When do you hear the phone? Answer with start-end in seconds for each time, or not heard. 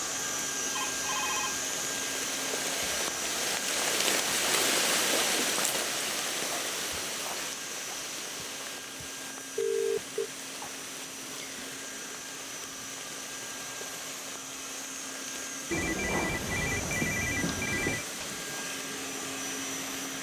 0.8-1.6, 9.6-10.3, 15.7-18.1.